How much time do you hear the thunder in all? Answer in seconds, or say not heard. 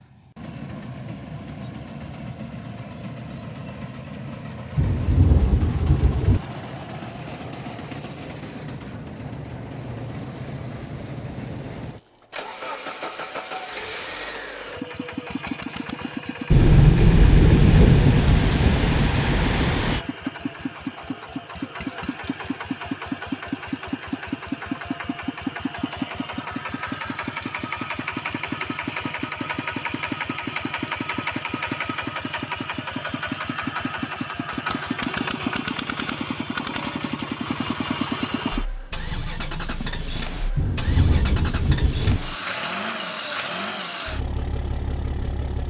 7 s.